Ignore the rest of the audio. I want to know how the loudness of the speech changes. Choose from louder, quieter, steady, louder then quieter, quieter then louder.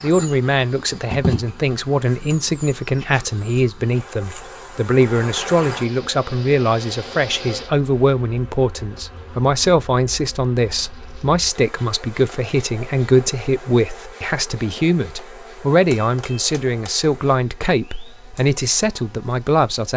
steady.